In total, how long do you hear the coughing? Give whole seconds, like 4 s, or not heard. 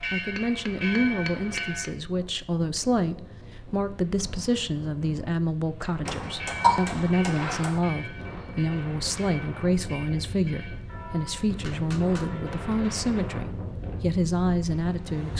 2 s.